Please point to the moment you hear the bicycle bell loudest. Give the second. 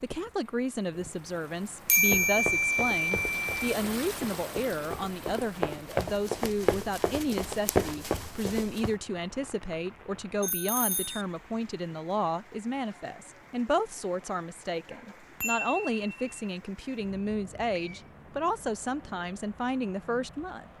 2 s.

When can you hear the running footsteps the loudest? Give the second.
8 s.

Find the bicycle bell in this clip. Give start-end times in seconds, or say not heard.
1.9-3.6, 10.4-11.2, 14.9-16.3.